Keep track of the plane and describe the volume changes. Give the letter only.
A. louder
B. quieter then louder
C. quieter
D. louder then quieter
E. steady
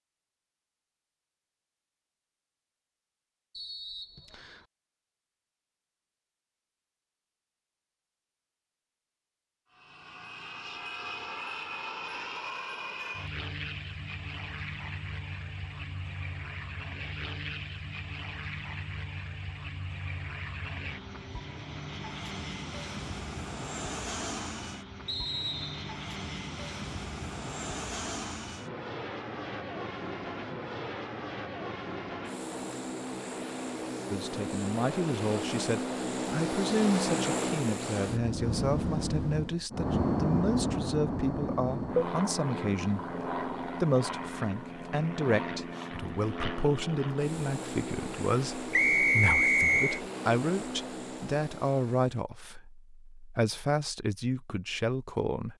D.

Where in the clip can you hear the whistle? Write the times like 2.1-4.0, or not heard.
3.5-4.7, 25.1-25.9, 48.7-50.0.